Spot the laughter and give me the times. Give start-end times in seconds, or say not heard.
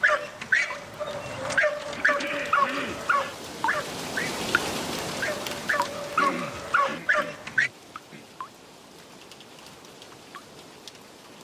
not heard.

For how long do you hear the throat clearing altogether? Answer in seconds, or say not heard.
3 s.